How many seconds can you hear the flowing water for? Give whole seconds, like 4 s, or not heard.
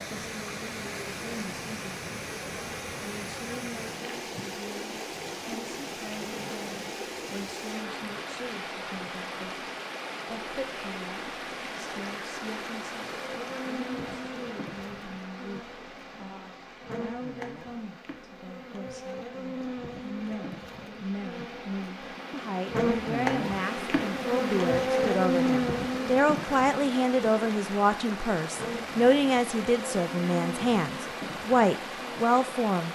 33 s.